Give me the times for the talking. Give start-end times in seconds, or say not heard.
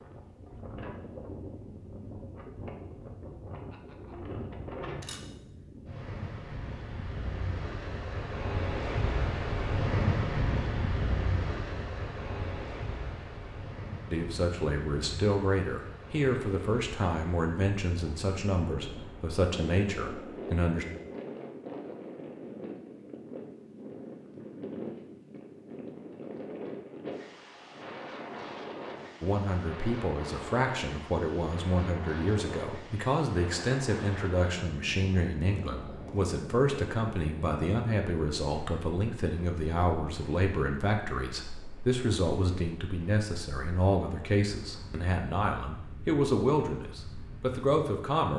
14.1-20.9, 29.2-48.3.